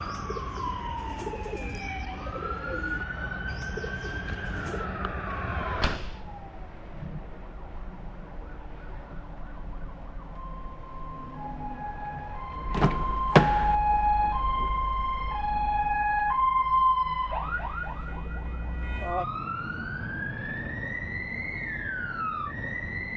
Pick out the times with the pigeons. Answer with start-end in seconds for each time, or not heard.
0.0-4.9.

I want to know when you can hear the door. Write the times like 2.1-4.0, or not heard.
5.8-6.3, 12.7-13.8.